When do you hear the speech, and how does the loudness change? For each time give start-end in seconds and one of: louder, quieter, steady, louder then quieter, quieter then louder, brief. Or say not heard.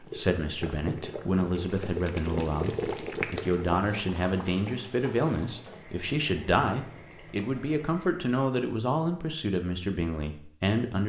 0.0-11.0 steady.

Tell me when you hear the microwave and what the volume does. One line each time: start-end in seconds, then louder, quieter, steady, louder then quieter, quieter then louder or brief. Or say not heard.
not heard.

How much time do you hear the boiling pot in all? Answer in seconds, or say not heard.
8 s.